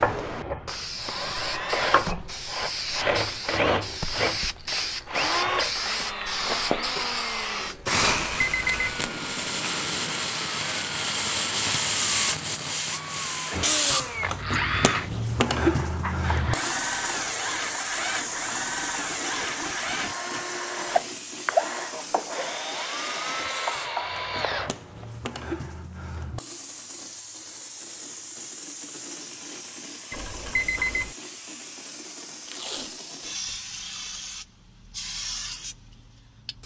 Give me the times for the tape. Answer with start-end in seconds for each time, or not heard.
8.8-10.4, 19.4-21.1, 32.4-33.5.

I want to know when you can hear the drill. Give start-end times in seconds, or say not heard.
0.0-25.1.